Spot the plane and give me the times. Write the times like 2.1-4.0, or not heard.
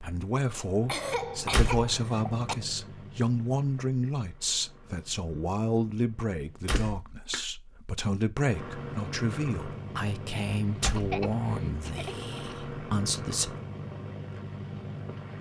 0.0-6.8, 8.4-15.3.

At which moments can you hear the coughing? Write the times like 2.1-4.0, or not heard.
0.8-2.5, 6.7-7.5, 10.8-12.6.